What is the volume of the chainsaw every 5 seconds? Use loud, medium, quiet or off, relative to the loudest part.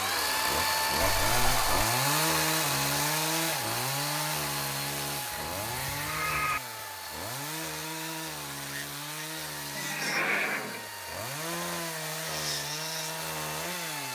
loud, medium, medium.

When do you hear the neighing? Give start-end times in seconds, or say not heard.
1.0-1.9, 5.3-6.6, 9.8-10.8.